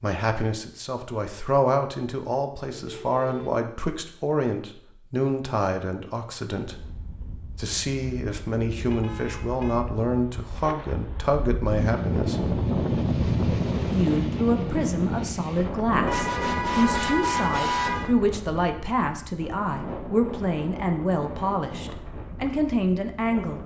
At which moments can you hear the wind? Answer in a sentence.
The wind can be heard from 6.7 to 23.6 s.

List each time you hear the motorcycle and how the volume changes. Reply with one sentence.
The motorcycle can't be heard in this clip.